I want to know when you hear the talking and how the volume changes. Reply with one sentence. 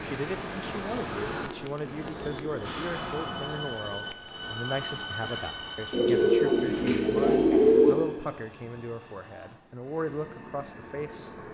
The talking can be heard from 0.1 to 11.5 s, at a steady volume.